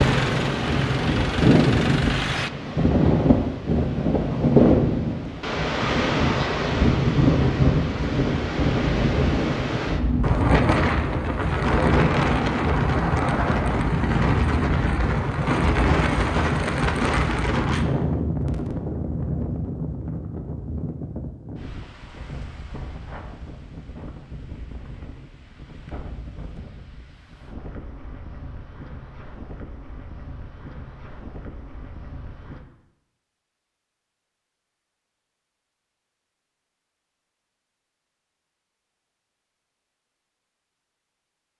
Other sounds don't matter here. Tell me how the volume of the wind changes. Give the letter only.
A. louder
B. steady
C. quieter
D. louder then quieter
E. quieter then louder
C.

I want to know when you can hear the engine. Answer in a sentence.
The engine can be heard from 0.0 to 2.5 s.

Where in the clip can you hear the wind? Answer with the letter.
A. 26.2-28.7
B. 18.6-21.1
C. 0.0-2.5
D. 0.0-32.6
D.